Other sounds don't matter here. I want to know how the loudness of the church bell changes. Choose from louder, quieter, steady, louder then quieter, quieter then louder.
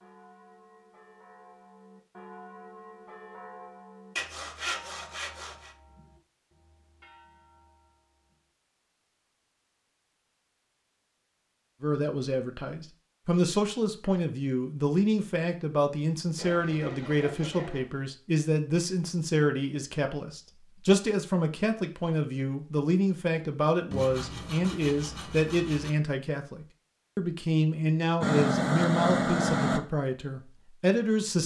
louder then quieter.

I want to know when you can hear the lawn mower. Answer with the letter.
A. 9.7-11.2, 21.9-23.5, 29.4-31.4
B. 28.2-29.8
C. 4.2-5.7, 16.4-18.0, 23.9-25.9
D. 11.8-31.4
B.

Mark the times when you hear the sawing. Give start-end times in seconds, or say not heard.
4.2-5.7, 16.4-18.0, 23.9-25.9.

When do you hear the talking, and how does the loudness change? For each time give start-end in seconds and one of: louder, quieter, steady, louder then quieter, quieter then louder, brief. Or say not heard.
11.8-31.4 steady.